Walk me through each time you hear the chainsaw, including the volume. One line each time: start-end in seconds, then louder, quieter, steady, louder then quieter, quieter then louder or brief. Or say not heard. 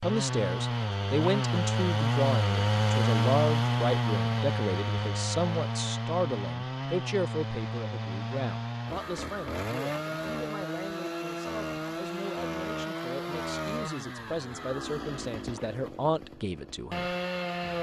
0.0-17.7 quieter.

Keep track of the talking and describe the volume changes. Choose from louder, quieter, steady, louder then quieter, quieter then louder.
quieter then louder.